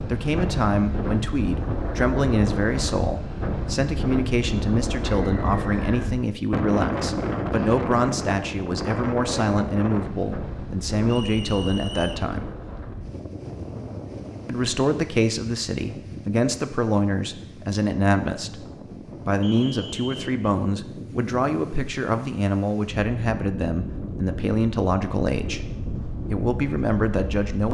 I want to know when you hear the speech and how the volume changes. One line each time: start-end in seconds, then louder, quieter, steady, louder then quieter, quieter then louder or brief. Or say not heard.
0.1-12.4 steady
14.4-27.6 steady.